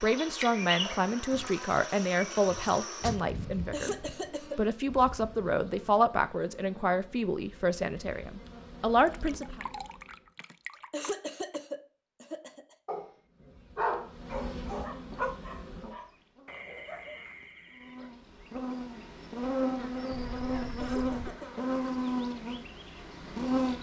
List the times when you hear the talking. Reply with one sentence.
You can hear the talking from 0.0 to 4.0 s and from 4.5 to 9.6 s.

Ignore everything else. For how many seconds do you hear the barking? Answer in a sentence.
The barking can be heard for 5 seconds in total.